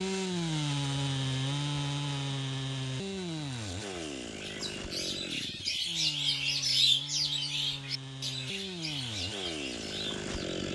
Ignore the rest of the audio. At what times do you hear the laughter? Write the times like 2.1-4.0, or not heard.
not heard.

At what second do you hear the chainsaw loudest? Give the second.
1 s.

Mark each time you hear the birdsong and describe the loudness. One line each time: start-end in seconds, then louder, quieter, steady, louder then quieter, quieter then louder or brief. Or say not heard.
4.2-10.7 louder then quieter.